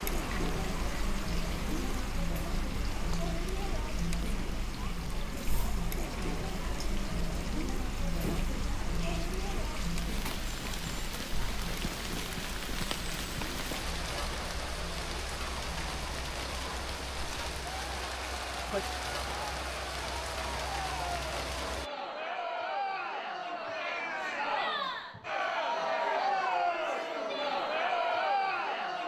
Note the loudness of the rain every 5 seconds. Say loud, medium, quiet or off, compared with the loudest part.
medium, medium, loud, loud, loud, off.